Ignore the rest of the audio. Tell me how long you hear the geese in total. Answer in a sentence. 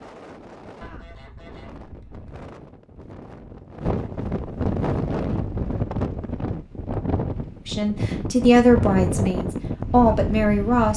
You can hear the geese for 2 seconds altogether.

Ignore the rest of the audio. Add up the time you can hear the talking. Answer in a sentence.
The talking can be heard for 3 seconds in total.